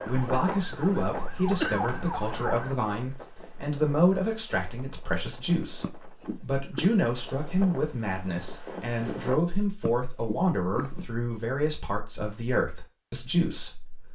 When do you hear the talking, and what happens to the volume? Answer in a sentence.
You can hear the talking from 0.1 to 14.1 s, at a steady volume.